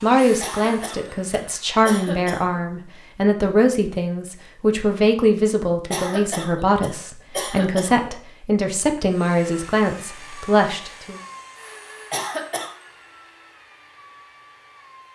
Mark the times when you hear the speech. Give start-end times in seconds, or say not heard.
0.0-11.2.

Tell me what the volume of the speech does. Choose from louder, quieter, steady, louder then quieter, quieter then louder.
steady.